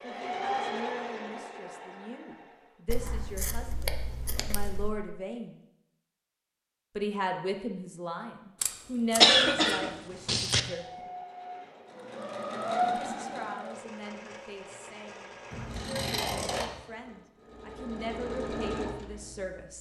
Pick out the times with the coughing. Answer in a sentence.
You can hear the coughing from 9.2 to 10.6 s.